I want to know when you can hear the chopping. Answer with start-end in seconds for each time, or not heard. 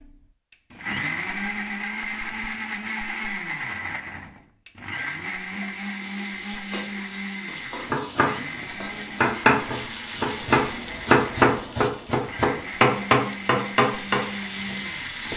7.8-14.8.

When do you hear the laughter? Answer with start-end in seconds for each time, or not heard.
not heard.